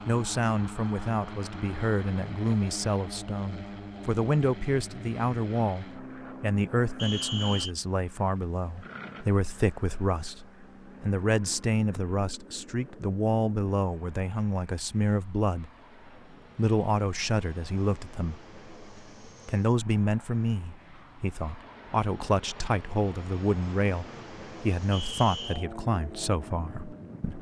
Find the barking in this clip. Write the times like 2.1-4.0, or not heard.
not heard.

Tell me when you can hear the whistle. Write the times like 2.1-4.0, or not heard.
7.0-7.8, 24.9-25.6.